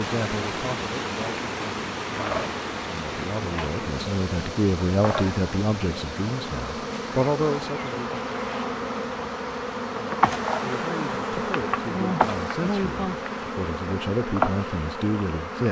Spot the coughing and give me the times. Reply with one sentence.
The coughing can't be heard in this clip.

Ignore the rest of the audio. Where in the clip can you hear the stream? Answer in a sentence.
You can hear the stream from 0.0 to 15.6 s.